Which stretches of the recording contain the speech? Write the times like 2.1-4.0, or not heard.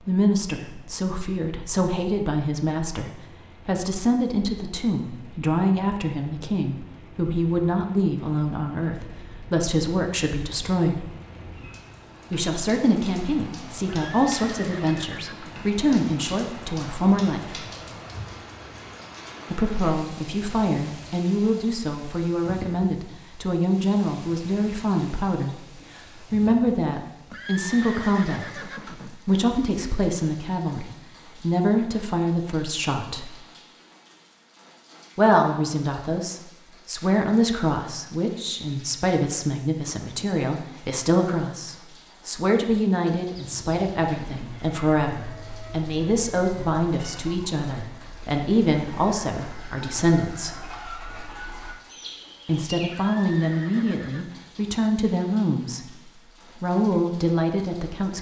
0.1-11.1, 12.3-17.6, 19.5-33.4, 35.1-50.5, 52.5-58.1.